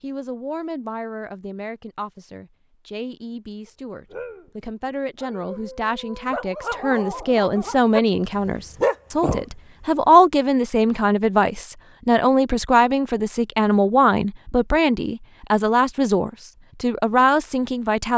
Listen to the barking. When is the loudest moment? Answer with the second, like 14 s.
9 s.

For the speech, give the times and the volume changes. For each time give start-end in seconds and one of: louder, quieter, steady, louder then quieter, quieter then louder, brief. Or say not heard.
0.0-18.1 louder.